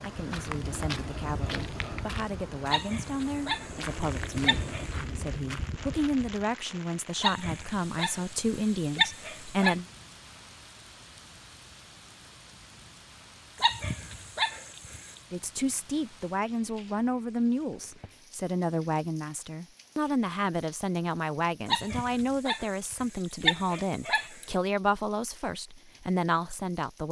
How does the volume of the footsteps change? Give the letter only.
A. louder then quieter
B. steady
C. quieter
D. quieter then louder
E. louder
D.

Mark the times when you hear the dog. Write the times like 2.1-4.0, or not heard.
2.6-4.9, 7.2-9.8, 13.6-15.2, 21.6-24.4.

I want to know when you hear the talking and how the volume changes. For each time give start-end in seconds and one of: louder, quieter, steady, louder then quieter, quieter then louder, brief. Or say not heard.
0.0-9.8 louder
15.3-27.0 steady.